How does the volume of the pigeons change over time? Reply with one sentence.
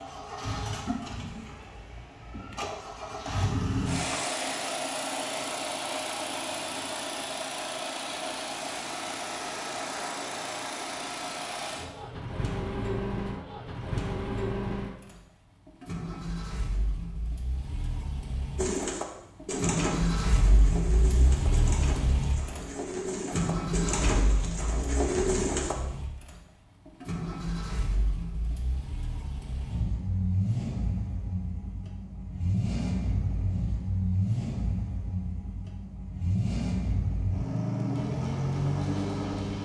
The loudness of the pigeons goes down, then up.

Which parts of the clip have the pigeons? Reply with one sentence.
The pigeons can be heard from 18.6 to 25.8 s.